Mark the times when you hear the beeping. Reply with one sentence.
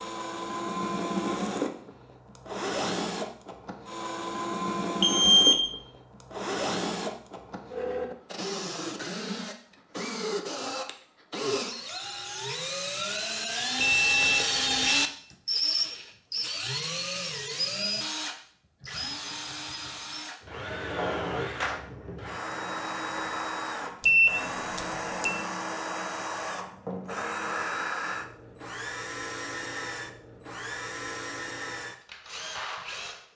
The beeping can be heard from 5.0 to 5.8 s, from 13.8 to 15.1 s and from 24.0 to 25.4 s.